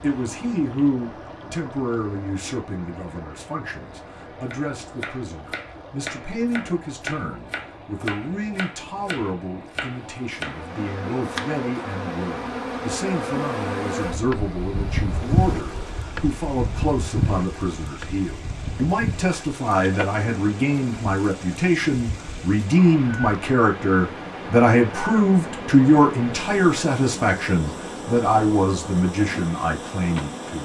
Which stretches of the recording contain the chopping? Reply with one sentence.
You can hear the chopping from 4.5 to 11.7 s.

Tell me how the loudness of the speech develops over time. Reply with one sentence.
The loudness of the speech goes up.